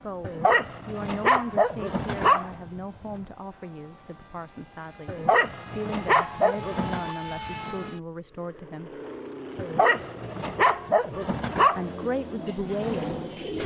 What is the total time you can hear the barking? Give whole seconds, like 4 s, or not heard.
7 s.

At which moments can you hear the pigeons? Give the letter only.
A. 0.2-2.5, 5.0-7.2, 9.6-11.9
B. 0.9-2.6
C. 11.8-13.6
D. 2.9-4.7
C.